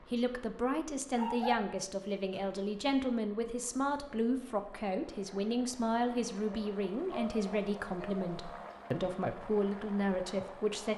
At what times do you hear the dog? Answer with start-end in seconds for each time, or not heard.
1.1-2.6, 6.5-8.8.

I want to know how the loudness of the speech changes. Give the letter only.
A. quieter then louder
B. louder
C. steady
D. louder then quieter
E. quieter
C.